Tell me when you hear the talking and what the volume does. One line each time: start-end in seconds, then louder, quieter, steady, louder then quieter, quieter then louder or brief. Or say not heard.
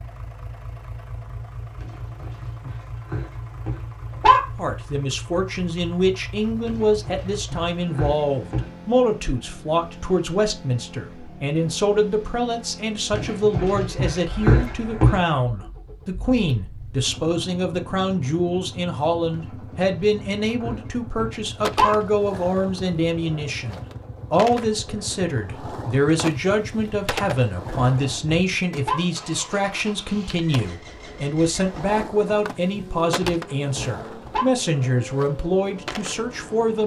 4.5-36.8 steady.